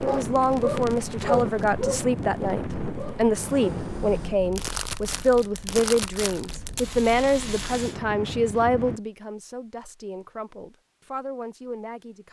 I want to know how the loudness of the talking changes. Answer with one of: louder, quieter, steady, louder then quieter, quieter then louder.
quieter.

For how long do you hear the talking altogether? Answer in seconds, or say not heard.
12 s.